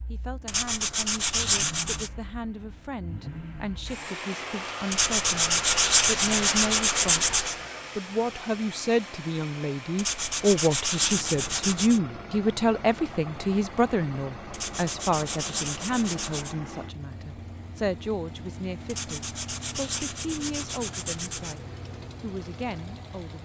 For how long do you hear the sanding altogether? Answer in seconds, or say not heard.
11 s.